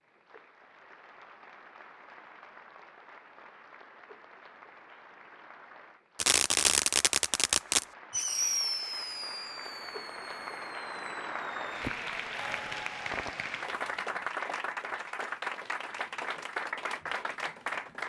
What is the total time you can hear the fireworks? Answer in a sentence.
The fireworks can be heard for 8 seconds in total.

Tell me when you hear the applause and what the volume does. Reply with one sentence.
The applause can be heard from 0.0 to 18.0 s, getting louder.